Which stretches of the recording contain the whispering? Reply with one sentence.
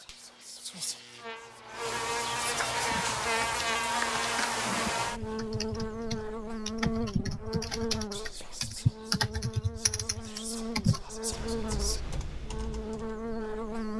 The whispering can be heard from 0.0 to 2.8 s and from 8.1 to 12.0 s.